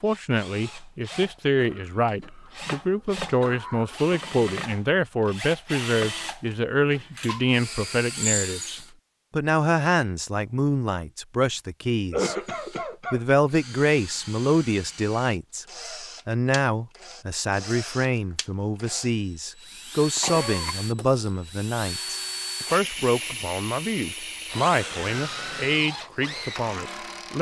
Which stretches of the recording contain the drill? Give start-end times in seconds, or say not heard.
0.0-8.9, 12.4-27.3.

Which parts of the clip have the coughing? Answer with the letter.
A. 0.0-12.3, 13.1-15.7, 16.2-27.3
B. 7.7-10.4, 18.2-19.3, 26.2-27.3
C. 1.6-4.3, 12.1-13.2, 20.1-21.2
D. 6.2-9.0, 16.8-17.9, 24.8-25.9
C.